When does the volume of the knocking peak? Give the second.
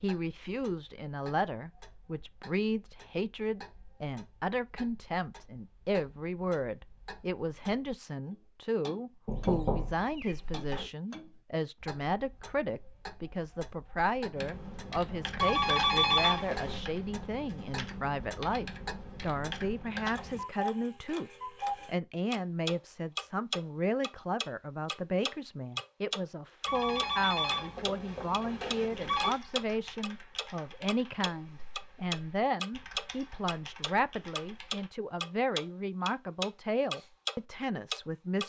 10 s.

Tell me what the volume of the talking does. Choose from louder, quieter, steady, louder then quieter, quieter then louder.
steady.